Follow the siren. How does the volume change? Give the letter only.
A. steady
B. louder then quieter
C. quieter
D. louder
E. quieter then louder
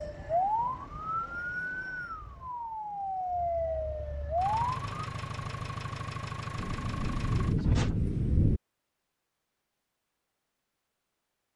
E.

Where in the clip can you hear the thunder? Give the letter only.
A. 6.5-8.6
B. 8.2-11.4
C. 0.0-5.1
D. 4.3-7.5
A.